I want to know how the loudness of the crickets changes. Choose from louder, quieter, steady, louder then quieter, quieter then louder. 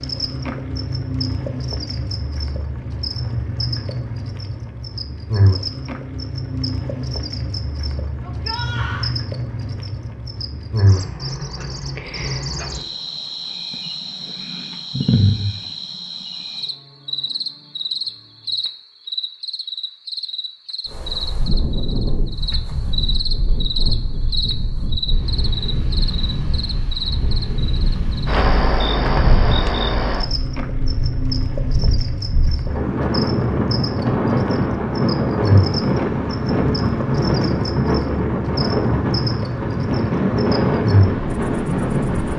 steady.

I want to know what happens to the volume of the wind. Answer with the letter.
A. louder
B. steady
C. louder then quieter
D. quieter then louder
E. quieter
A.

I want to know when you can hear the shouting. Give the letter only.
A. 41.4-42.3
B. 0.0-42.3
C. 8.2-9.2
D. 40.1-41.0
C.